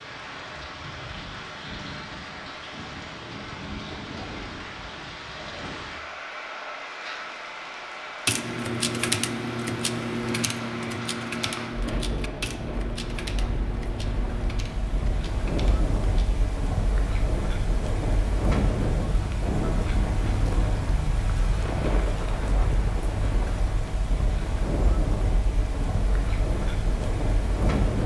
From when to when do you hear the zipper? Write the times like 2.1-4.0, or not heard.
not heard.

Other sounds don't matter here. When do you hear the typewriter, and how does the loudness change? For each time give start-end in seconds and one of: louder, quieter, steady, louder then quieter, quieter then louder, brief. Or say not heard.
8.2-16.4 quieter.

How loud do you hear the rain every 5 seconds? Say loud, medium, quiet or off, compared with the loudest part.
medium, medium, medium, loud, loud, loud.